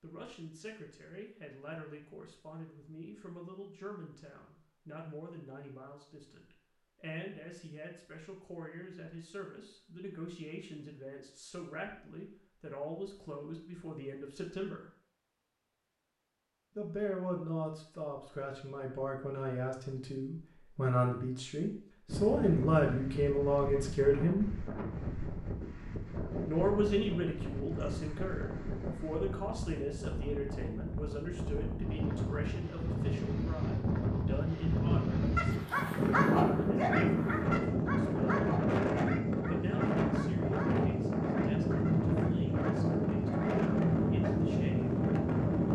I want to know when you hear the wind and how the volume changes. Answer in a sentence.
The wind can be heard from 22.1 to 45.6 s, getting louder.